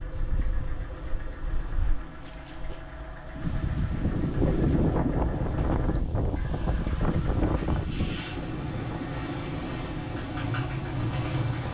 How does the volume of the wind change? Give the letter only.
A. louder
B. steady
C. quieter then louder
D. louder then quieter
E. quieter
D.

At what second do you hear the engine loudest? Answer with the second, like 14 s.
11 s.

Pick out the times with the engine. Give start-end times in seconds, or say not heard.
0.0-11.6.